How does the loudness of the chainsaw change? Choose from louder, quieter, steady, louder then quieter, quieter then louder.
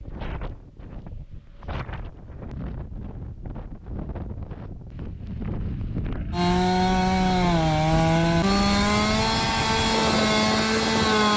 steady.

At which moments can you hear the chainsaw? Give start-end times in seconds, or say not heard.
6.3-11.3.